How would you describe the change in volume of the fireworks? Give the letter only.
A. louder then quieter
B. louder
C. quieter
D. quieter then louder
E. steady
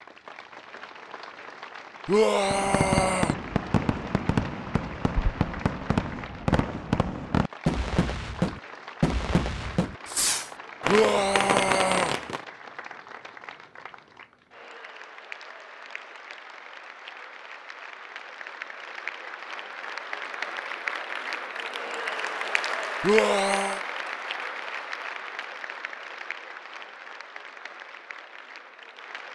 E.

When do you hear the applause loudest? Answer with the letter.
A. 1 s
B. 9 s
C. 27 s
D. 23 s
D.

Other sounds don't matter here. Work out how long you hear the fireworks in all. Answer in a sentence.
The fireworks can be heard for 10 seconds in total.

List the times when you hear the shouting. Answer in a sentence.
The shouting can be heard from 2.0 to 3.4 s, from 10.8 to 12.2 s and from 23.0 to 23.8 s.